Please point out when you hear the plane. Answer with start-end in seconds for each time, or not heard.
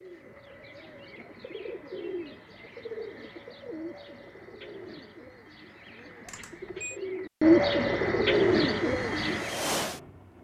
8.6-10.3.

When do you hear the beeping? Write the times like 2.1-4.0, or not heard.
6.2-7.0.